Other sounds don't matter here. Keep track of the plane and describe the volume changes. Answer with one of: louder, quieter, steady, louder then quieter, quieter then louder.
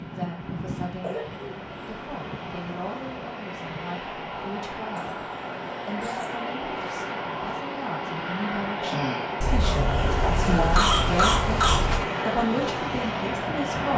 louder.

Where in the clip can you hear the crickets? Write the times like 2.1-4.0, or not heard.
not heard.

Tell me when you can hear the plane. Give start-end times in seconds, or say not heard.
0.0-13.9.